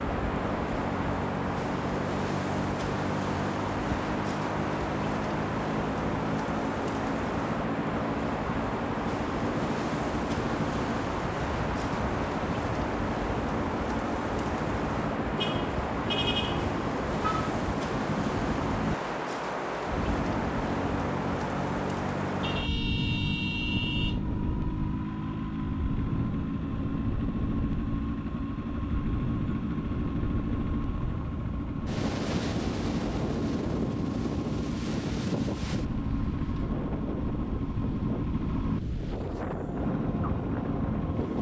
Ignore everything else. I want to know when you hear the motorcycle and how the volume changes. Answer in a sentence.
You can hear the motorcycle from 0.0 to 41.3 s, at a steady volume.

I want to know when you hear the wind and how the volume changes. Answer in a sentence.
The wind can be heard from 0.0 to 41.3 s, at a steady volume.